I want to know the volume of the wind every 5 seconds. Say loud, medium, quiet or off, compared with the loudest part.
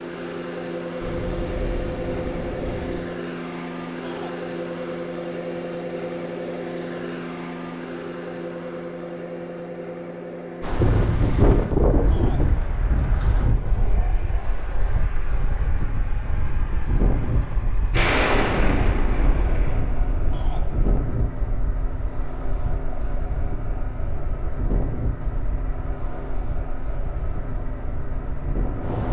off, off, loud, medium, medium, medium.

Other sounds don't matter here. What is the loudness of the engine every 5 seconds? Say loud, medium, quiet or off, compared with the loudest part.
loud, loud, medium, medium, medium, medium.